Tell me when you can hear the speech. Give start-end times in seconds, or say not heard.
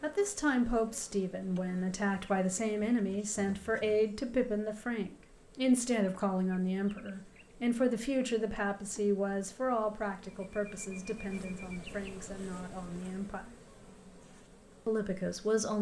0.0-13.5, 14.8-15.7.